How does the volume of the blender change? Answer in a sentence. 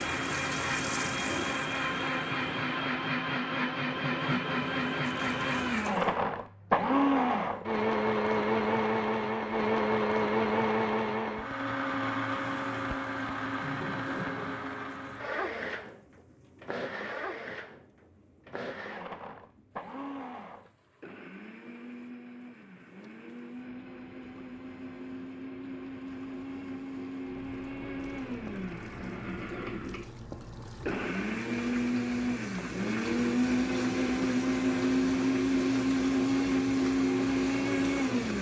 The loudness of the blender goes down, then up.